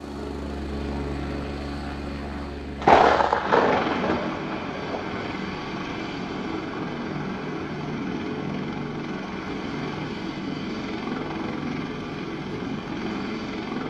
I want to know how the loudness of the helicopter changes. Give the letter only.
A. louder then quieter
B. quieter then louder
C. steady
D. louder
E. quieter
C.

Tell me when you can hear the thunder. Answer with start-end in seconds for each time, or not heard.
2.8-5.2.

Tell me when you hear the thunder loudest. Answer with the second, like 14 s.
3 s.